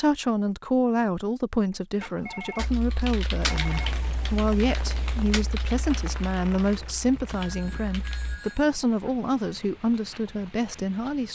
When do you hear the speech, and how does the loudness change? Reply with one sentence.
You can hear the speech from 0.0 to 11.2 s, at a steady volume.